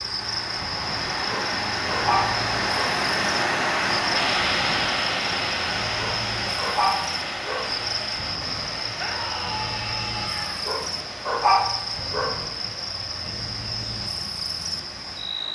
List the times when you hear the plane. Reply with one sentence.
The plane can't be heard in this clip.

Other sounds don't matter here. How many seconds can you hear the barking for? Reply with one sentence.
You can hear the barking for 5 seconds altogether.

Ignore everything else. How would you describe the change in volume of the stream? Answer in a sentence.
The loudness of the stream goes down.